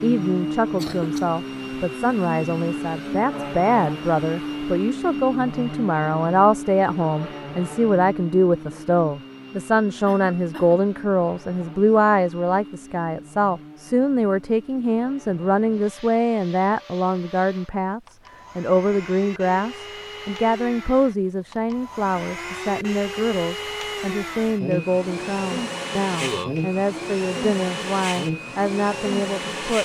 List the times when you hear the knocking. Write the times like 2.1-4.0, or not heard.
not heard.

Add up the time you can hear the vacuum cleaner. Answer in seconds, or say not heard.
30 s.